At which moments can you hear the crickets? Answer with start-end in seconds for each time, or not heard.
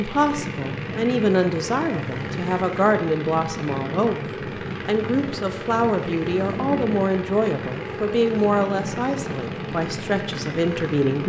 not heard.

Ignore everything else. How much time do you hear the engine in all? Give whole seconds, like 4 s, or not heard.
11 s.